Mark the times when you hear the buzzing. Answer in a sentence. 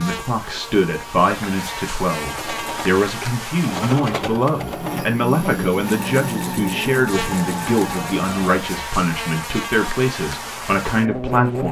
You can hear the buzzing from 0.0 to 11.6 s.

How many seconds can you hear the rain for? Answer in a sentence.
You can't hear the rain here.